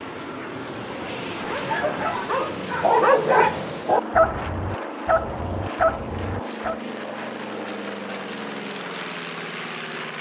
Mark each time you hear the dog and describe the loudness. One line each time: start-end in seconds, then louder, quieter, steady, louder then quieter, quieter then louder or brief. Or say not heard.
1.4-6.8 louder then quieter.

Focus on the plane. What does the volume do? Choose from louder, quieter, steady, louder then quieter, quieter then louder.
steady.